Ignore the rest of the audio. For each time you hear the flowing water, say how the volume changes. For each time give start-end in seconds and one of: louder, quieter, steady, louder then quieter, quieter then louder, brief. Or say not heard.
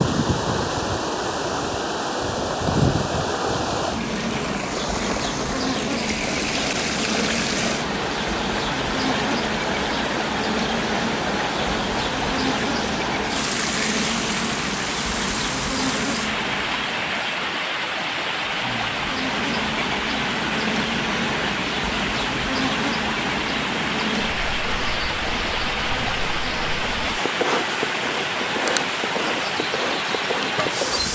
0.0-31.1 steady.